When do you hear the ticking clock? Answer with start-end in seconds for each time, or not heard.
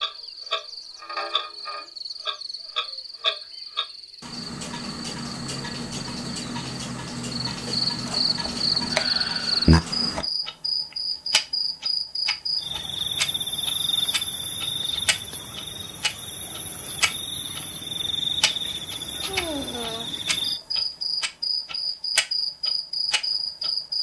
0.0-23.7.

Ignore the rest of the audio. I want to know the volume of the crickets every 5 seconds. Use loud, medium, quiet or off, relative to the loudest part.
quiet, loud, loud, medium, loud.